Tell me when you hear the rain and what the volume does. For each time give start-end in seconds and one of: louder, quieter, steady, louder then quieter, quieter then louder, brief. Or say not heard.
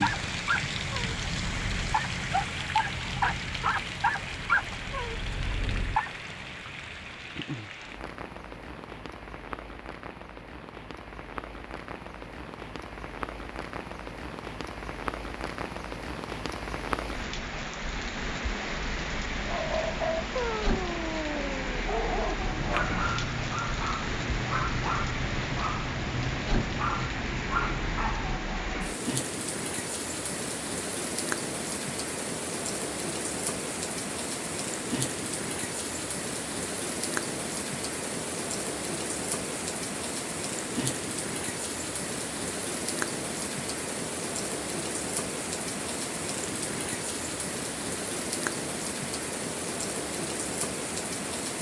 0.0-51.5 steady.